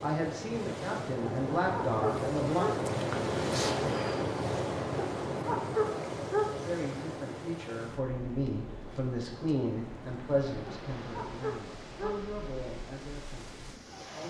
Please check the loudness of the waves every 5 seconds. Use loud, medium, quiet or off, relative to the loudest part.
loud, medium, quiet.